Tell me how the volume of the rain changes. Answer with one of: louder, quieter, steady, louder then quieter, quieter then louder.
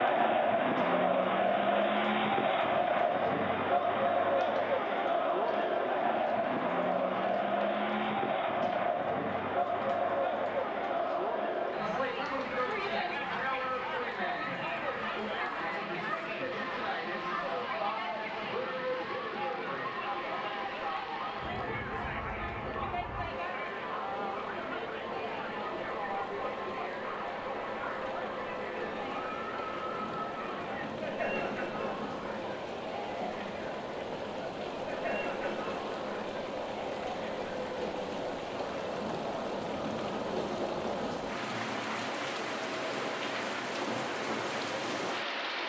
louder.